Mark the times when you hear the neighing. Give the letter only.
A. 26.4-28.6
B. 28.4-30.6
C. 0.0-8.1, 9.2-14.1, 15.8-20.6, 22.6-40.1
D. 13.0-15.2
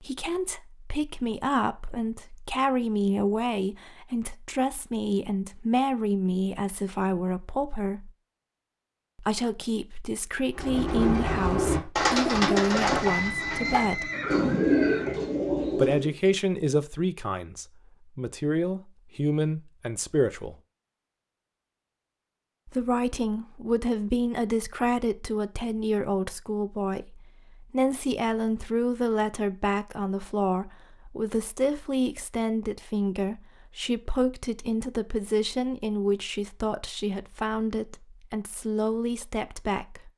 D.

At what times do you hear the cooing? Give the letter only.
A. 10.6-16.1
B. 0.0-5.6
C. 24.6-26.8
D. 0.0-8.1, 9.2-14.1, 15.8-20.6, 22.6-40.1
A.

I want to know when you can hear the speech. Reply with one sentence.
The speech can be heard from 0.0 to 8.1 s, from 9.2 to 14.1 s, from 15.8 to 20.6 s and from 22.6 to 40.1 s.